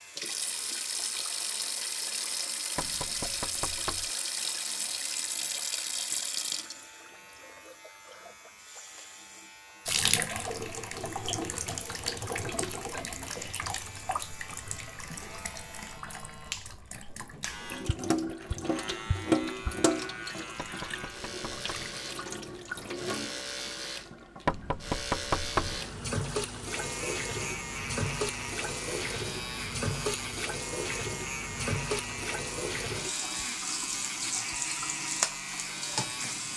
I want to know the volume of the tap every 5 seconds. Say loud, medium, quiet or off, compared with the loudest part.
loud, loud, loud, loud, medium, loud, loud, loud.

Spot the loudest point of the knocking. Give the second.
25 s.